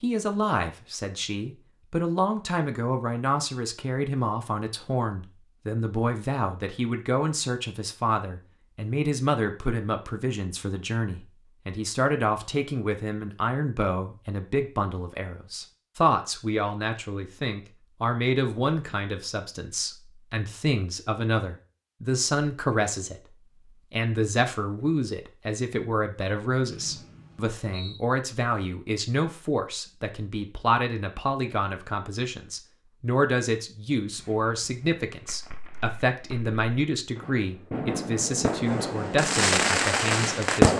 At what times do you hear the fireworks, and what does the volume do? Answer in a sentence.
The fireworks can be heard from 34.0 to 40.7 s, getting louder.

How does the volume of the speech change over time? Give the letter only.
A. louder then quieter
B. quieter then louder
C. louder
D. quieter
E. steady
E.